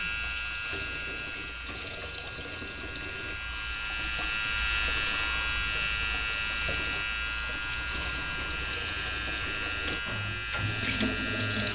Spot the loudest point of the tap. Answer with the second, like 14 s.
11 s.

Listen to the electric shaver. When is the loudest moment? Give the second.
5 s.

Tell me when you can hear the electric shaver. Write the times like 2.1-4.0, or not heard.
0.0-11.7.